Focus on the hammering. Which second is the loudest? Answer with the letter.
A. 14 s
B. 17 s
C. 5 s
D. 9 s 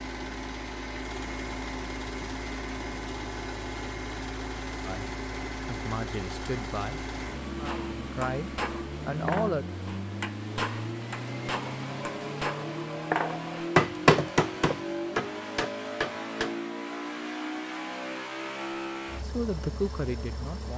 A.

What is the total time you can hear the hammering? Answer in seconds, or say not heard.
9 s.